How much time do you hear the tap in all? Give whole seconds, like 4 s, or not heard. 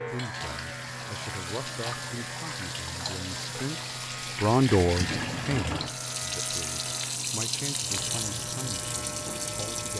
10 s.